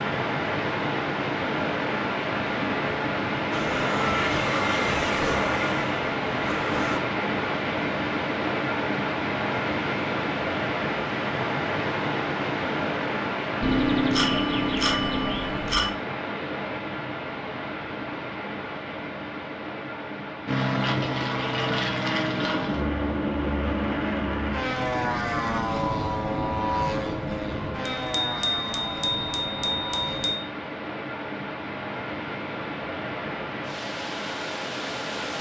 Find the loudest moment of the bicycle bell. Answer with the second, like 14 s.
14 s.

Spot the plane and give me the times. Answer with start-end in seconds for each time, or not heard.
3.5-7.0, 20.4-30.4.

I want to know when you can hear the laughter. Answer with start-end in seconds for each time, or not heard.
not heard.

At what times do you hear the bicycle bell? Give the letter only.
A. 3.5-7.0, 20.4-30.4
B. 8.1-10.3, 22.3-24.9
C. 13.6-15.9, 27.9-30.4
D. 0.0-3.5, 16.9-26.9
C.